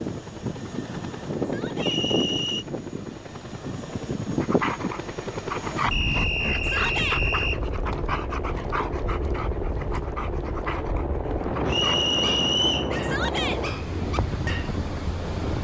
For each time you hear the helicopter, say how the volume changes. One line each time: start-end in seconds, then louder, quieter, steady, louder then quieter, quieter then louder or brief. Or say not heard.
0.0-15.5 louder.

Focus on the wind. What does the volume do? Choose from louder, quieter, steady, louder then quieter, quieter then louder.
quieter then louder.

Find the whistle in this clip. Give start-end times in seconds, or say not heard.
1.8-2.6, 5.9-7.6, 11.7-12.9.